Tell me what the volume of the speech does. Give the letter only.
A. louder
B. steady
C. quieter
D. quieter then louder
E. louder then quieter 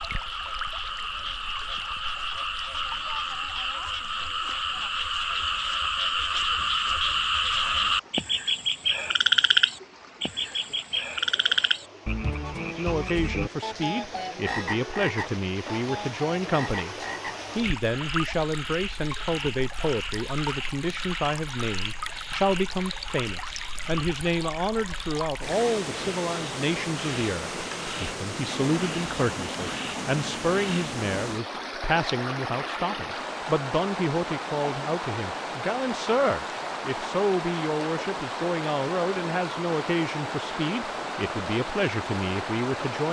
B.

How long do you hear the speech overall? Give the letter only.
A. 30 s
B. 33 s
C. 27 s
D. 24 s
A.